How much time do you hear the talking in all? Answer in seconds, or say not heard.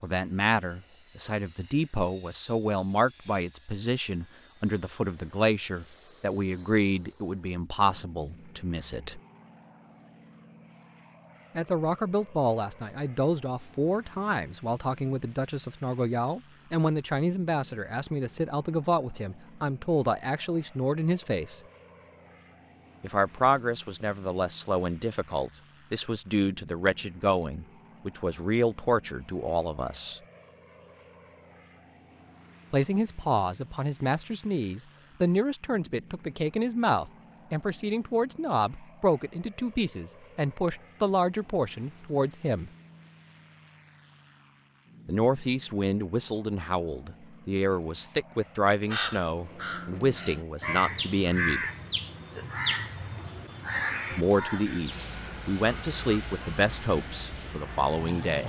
47 s.